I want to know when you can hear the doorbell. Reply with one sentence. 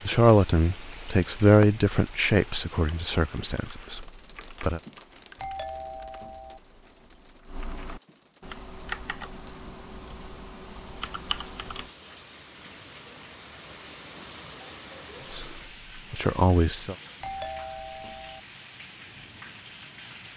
You can hear the doorbell from 5.3 to 6.6 s and from 17.2 to 18.4 s.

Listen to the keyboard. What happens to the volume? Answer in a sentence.
The volume of the keyboard goes down, then up.